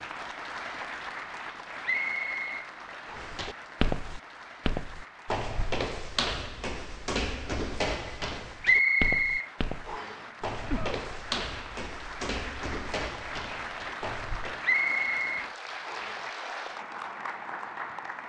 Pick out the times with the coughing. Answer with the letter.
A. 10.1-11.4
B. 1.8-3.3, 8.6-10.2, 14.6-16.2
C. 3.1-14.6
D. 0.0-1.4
A.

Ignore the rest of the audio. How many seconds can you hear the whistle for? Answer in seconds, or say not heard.
5 s.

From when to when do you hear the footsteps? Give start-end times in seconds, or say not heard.
3.1-14.6.